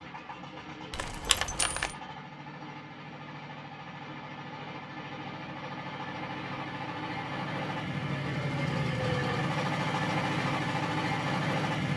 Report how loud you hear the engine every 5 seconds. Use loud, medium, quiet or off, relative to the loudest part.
quiet, loud, loud.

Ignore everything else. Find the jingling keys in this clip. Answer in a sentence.
The jingling keys can be heard from 0.9 to 1.9 s.